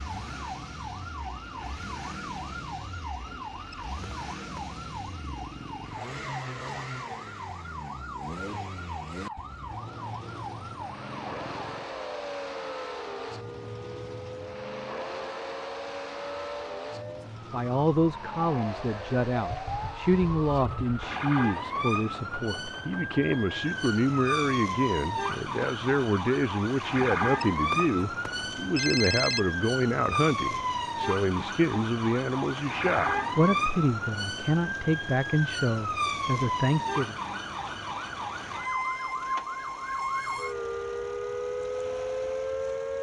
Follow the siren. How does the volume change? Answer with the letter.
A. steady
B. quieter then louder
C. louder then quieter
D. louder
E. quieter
D.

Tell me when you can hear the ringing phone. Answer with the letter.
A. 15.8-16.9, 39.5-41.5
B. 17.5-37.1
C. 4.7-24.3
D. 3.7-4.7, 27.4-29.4
D.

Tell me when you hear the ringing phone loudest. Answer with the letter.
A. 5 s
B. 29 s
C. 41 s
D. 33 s
B.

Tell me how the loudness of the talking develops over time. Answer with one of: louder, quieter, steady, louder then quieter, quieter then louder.
steady.